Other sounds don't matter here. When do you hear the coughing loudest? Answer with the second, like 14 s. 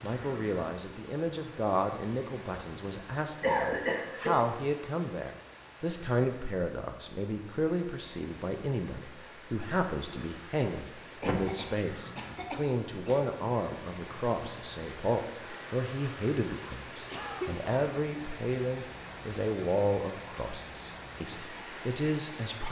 4 s.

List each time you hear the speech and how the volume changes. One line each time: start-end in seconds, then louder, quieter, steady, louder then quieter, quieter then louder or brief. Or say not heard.
0.0-22.6 steady.